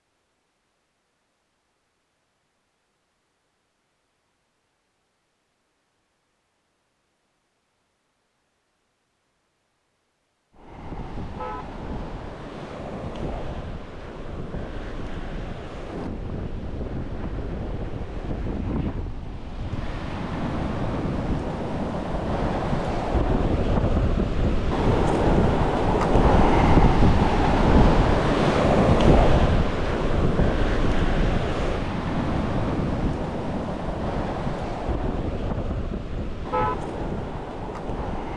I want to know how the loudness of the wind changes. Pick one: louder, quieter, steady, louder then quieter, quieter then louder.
louder then quieter.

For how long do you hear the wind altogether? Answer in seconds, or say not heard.
28 s.